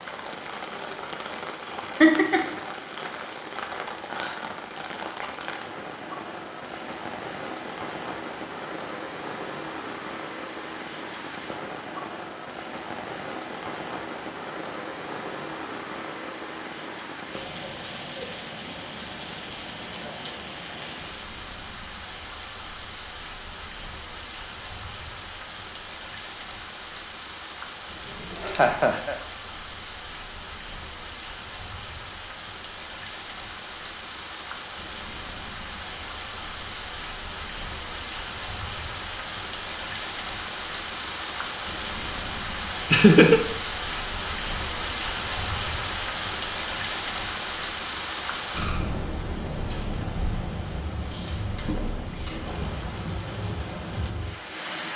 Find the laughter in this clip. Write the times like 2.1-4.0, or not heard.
2.0-2.5, 28.1-29.1, 42.9-43.4.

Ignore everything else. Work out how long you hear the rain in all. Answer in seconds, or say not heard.
55 s.